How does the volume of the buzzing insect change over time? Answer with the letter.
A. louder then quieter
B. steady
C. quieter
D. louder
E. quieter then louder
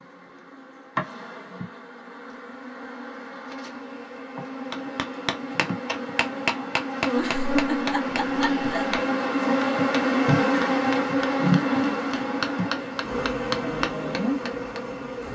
A.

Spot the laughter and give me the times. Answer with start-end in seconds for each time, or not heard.
7.2-9.0.